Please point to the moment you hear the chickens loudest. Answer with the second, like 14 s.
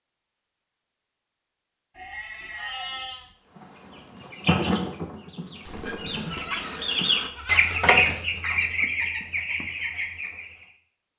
8 s.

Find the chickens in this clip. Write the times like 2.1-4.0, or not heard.
3.5-10.8.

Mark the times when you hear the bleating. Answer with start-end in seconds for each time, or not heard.
1.9-3.4, 5.7-7.8.